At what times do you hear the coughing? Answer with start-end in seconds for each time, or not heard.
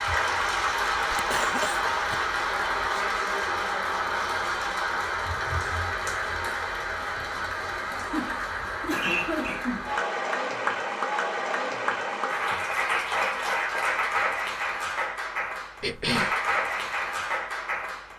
1.1-3.0, 7.9-9.9, 15.8-16.4.